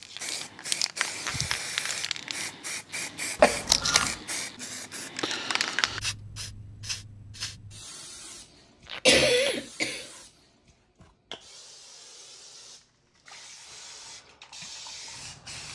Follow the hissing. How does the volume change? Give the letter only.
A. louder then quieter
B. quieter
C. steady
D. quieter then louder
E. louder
B.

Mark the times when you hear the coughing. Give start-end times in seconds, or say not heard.
3.4-4.2, 9.1-10.1.